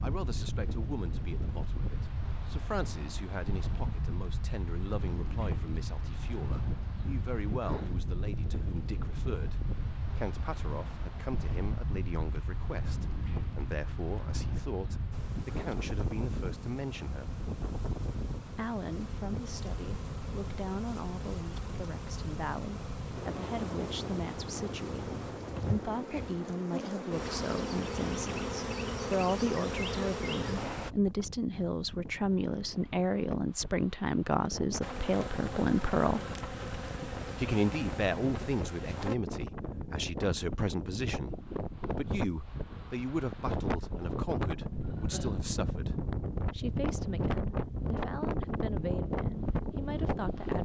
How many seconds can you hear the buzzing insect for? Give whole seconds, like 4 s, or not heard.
20 s.